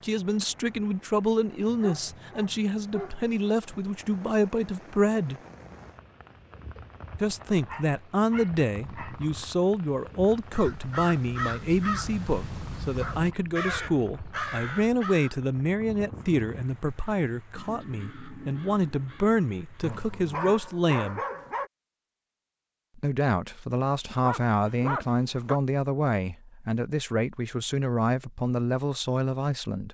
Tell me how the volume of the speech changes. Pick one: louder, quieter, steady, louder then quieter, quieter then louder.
steady.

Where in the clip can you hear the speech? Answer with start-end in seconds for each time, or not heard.
0.0-5.4, 7.2-21.2, 22.9-29.8.